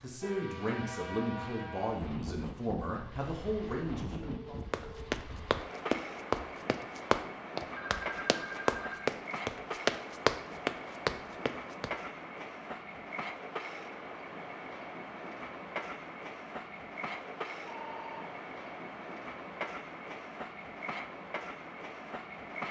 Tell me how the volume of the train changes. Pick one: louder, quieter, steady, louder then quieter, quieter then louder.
steady.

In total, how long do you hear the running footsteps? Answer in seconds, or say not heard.
7 s.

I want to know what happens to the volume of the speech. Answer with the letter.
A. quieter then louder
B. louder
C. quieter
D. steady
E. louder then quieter
D.